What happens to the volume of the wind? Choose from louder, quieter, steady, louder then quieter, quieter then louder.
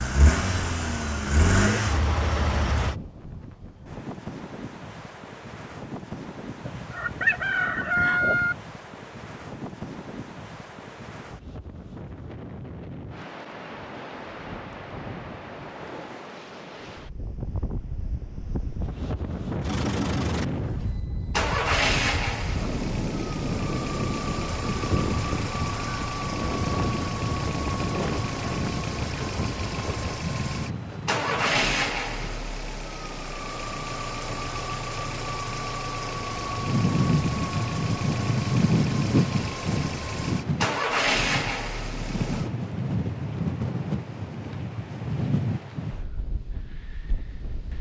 louder.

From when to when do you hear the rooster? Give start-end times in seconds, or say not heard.
6.6-8.6.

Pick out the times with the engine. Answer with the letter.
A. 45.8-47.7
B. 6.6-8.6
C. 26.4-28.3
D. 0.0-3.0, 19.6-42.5
D.